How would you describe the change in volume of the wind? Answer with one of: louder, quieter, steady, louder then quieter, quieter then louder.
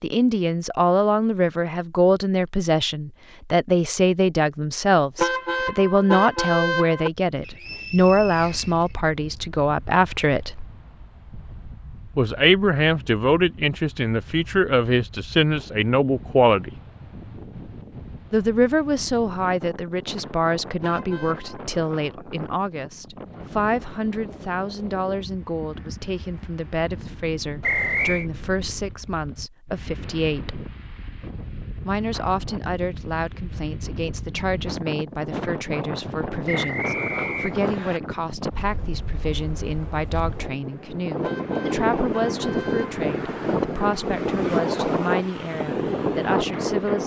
louder.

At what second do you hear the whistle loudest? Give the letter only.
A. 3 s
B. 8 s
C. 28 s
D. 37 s
C.